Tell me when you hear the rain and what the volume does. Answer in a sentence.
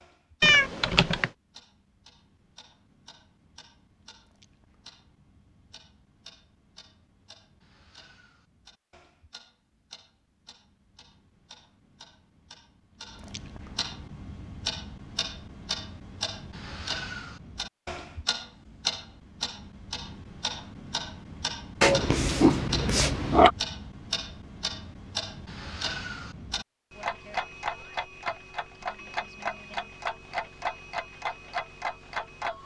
You can't hear the rain here.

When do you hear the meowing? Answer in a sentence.
The meowing can be heard from 0.4 to 1.3 s and from 21.8 to 23.5 s.